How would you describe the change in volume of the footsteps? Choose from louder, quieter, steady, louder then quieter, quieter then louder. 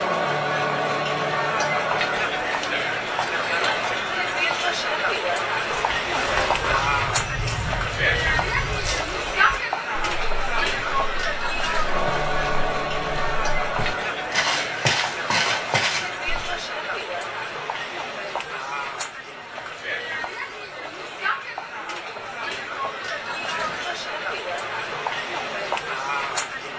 quieter then louder.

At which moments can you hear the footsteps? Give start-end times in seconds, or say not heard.
5.6-16.6.